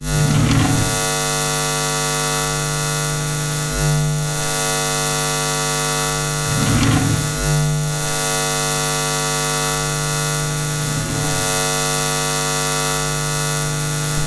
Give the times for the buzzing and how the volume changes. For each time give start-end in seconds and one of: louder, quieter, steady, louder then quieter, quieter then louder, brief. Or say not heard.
0.0-14.2 steady.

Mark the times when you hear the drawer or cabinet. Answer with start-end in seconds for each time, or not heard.
0.1-1.1, 6.5-7.4, 10.8-11.6.